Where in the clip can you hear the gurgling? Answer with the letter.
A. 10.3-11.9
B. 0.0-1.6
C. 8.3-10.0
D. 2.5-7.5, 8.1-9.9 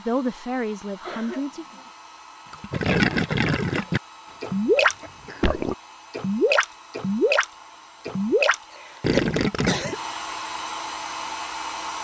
D.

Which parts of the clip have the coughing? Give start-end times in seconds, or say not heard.
1.0-1.9, 4.2-5.6, 8.7-10.0.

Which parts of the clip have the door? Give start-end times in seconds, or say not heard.
not heard.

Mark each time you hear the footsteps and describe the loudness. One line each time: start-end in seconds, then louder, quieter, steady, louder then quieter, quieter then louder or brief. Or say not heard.
not heard.